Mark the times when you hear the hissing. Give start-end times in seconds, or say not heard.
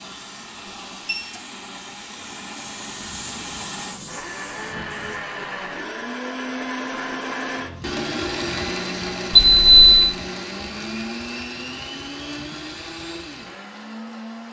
0.0-5.2.